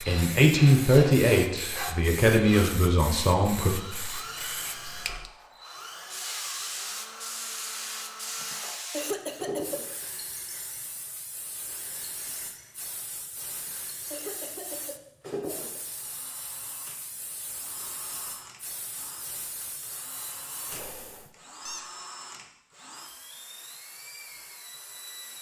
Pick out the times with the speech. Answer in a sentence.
You can hear the speech from 0.0 to 3.8 s.